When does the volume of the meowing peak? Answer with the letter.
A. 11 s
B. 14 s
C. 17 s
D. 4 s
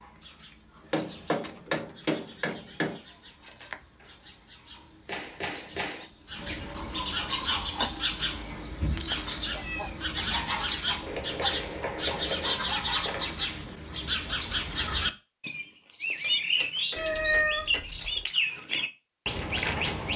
C.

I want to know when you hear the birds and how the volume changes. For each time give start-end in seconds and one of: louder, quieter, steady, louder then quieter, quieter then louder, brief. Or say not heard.
0.0-20.1 louder.